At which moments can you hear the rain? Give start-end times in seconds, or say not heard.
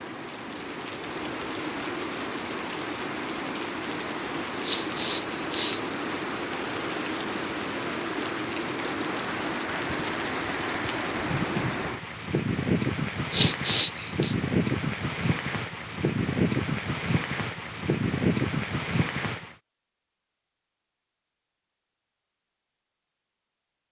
0.0-19.6.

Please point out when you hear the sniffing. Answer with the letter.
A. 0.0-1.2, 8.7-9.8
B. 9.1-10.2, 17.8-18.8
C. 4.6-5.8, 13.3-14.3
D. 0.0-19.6
C.